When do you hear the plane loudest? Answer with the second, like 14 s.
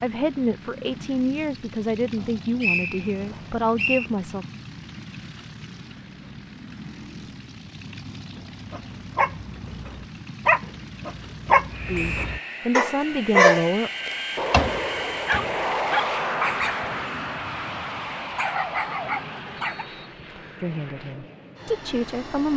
16 s.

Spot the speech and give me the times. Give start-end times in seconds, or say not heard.
0.0-4.5, 11.8-13.9, 20.6-22.5.